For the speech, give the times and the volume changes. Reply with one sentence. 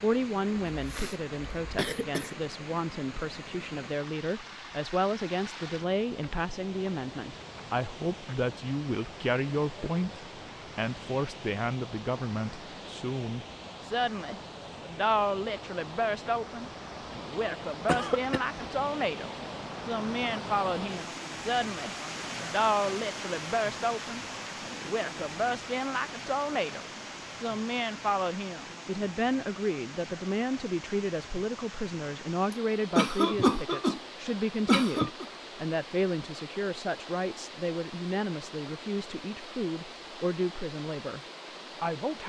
You can hear the speech from 0.0 to 41.2 s, at a steady volume; and briefly from 41.8 to 42.2 s.